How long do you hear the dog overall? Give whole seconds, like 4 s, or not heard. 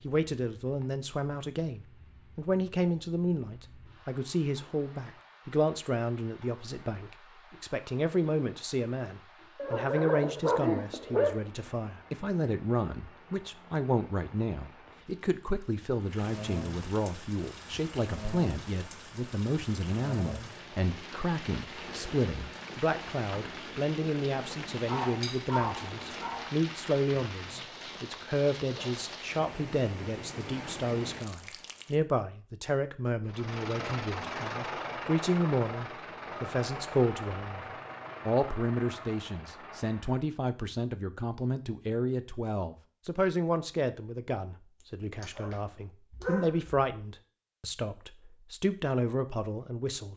5 s.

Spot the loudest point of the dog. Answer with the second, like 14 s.
11 s.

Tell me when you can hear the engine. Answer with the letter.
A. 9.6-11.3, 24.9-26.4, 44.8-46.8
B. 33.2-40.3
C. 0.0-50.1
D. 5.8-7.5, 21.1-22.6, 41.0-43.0
B.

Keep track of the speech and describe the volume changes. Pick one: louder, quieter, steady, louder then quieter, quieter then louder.
steady.